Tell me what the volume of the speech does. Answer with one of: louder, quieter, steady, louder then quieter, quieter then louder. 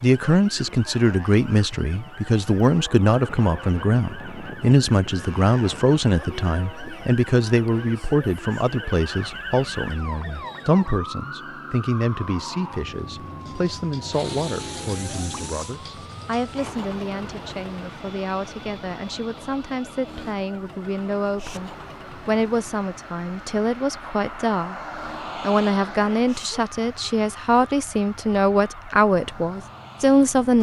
quieter then louder.